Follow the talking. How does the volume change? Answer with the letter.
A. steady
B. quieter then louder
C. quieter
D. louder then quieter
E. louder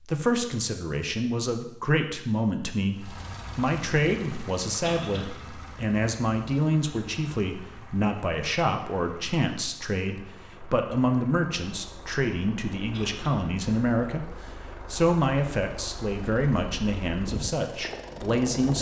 A.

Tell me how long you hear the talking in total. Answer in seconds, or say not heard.
19 s.